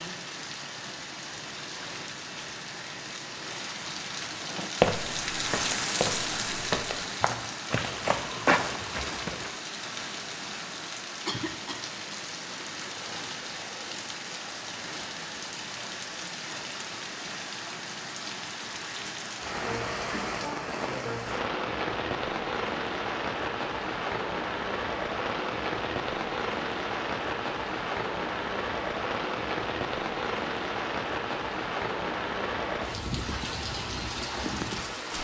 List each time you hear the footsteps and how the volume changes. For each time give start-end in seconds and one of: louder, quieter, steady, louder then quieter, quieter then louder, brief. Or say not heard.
4.5-9.5 louder.